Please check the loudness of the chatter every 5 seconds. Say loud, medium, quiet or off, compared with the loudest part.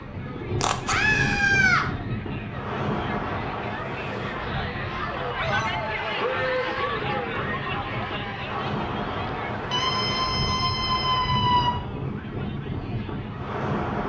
medium, loud, quiet.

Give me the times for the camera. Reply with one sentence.
The camera can be heard from 0.6 to 1.4 s.